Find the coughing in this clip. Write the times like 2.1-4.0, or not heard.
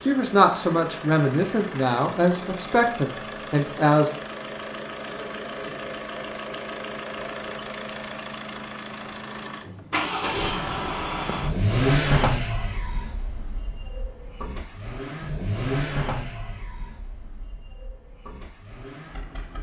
not heard.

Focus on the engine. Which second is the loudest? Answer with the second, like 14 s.
12 s.